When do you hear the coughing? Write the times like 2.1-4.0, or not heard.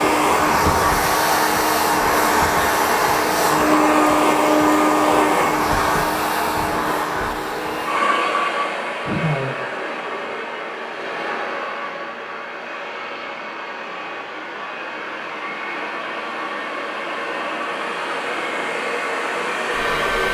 9.1-9.6.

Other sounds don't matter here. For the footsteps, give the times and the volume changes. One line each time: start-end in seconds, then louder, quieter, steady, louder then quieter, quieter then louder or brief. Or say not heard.
not heard.